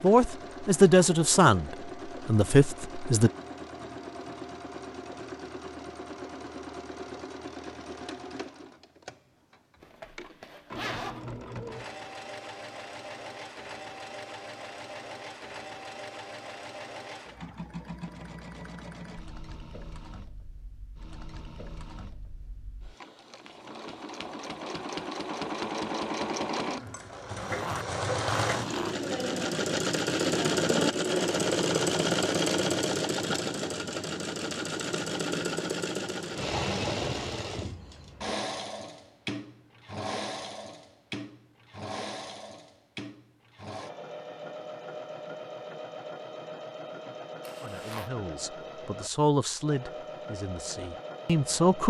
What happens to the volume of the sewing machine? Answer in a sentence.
The volume of the sewing machine goes up, then down.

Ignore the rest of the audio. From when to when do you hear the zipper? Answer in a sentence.
The zipper can be heard from 9.8 to 11.3 s, from 27.4 to 28.9 s and from 47.4 to 48.1 s.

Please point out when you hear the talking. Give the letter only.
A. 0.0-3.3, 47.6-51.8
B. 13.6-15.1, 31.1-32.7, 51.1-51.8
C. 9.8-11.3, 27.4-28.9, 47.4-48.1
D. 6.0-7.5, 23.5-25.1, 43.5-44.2
A.